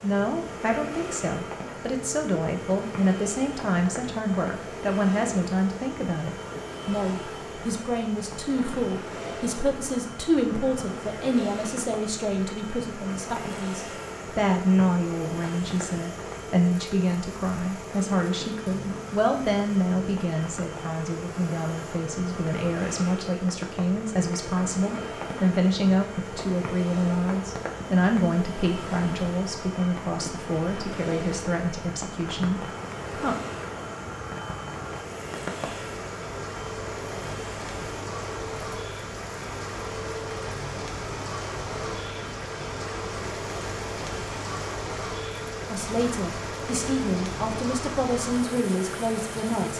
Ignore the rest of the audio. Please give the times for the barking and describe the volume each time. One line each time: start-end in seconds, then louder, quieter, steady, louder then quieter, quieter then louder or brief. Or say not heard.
not heard.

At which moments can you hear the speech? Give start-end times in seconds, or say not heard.
0.0-33.4, 45.6-49.7.